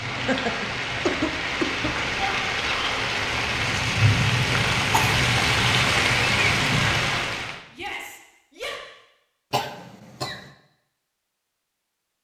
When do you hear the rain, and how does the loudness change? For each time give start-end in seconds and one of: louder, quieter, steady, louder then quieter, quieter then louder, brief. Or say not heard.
0.0-7.6 louder.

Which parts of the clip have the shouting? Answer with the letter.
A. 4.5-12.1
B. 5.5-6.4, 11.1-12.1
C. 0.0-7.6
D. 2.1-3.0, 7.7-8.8
D.